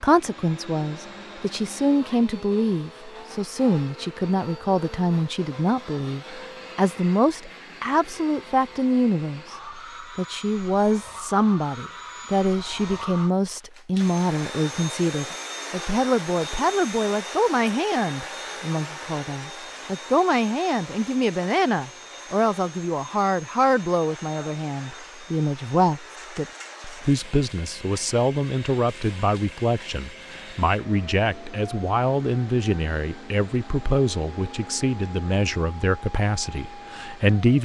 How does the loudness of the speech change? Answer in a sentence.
The volume of the speech stays about the same.